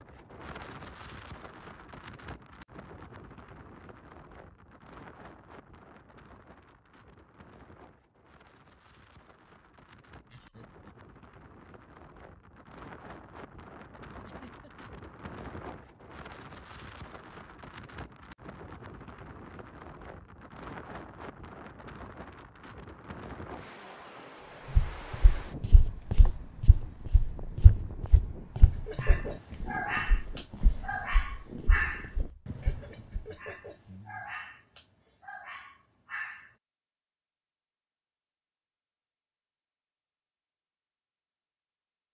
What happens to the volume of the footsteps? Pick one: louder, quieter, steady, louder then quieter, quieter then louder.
quieter.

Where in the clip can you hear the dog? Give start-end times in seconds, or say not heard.
28.9-36.5.